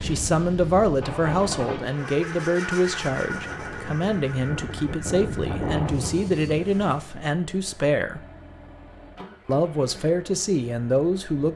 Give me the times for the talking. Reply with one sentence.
The talking can be heard from 0.0 to 8.2 s and from 9.4 to 11.5 s.